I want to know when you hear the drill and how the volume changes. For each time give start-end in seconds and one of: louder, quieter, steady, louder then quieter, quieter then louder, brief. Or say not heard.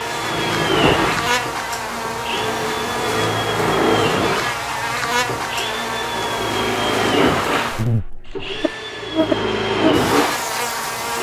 0.0-11.1 quieter then louder.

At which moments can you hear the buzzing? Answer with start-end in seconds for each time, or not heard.
0.0-11.1.